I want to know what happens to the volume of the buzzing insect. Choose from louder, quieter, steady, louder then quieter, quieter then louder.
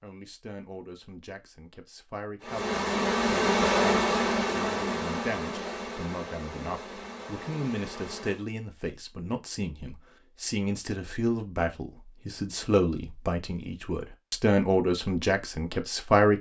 quieter.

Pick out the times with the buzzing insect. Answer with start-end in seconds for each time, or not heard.
2.4-8.4.